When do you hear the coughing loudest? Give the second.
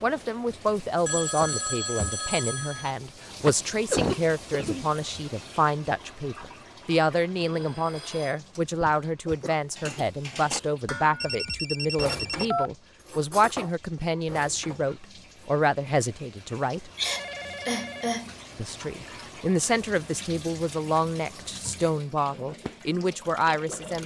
4 s.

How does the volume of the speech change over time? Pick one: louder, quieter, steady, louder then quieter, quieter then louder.
steady.